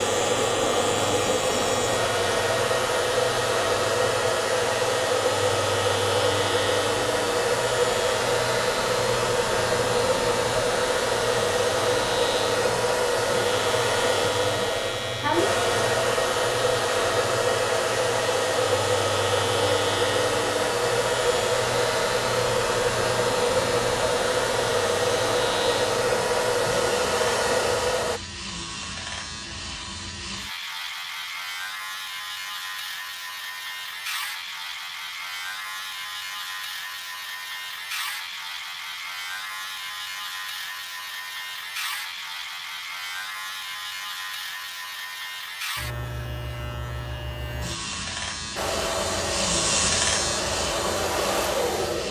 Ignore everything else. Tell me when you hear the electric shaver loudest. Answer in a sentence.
The loudest moment of the electric shaver is at 50 seconds.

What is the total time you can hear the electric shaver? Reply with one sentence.
You can hear the electric shaver for 52 seconds altogether.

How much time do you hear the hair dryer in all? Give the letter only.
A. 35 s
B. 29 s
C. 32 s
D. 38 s
C.